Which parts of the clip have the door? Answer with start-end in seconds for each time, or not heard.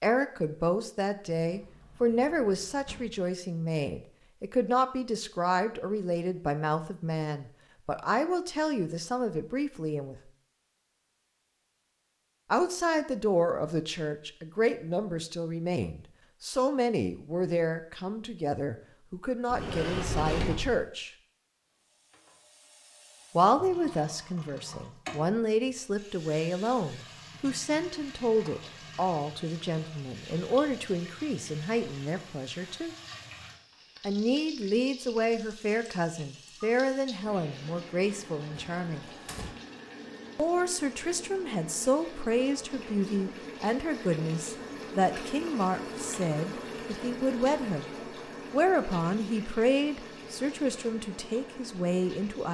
1.4-3.2, 19.5-20.9, 38.5-39.5.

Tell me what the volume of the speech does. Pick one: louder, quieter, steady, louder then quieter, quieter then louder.
steady.